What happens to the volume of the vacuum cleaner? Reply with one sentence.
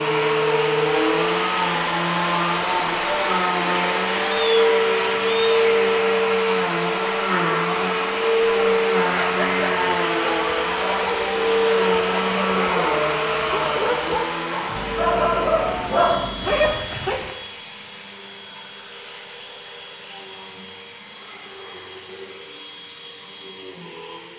The volume of the vacuum cleaner goes down.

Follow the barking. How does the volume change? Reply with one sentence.
The loudness of the barking goes up.